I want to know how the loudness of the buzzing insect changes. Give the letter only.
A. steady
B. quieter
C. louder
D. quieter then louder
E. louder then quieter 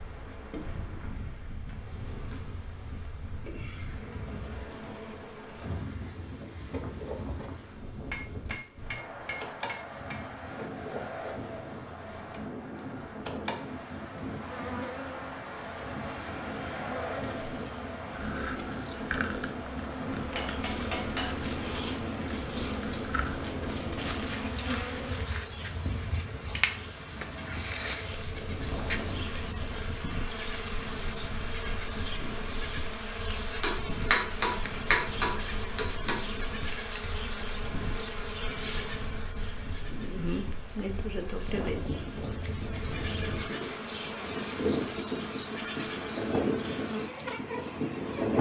C.